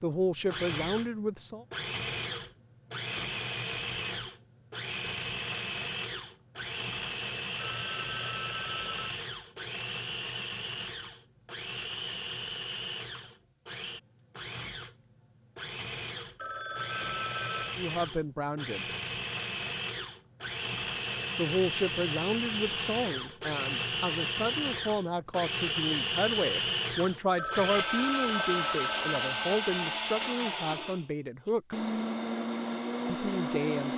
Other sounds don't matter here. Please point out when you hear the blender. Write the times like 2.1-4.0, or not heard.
0.1-33.9.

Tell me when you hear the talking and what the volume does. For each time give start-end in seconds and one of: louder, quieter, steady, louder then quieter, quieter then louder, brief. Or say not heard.
0.0-1.6 brief
17.8-18.9 brief
21.4-31.9 steady
33.0-33.9 brief.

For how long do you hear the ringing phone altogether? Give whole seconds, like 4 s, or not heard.
5 s.